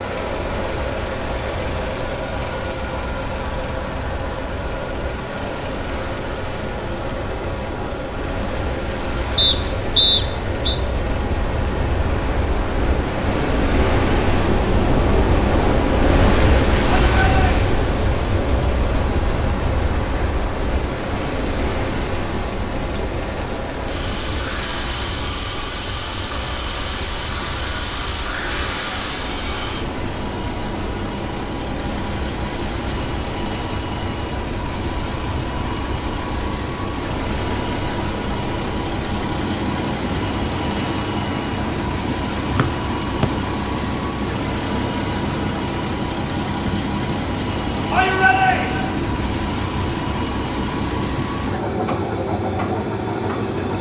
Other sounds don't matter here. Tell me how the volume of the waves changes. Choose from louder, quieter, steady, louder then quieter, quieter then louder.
louder then quieter.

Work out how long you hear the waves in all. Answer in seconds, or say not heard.
54 s.